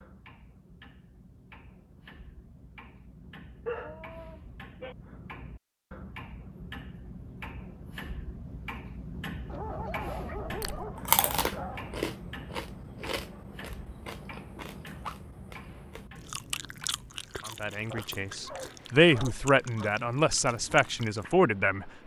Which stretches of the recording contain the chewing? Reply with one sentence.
You can hear the chewing from 10.4 to 21.2 s.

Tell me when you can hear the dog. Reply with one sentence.
You can hear the dog from 3.6 to 5.0 s, from 9.4 to 11.9 s and from 17.9 to 19.9 s.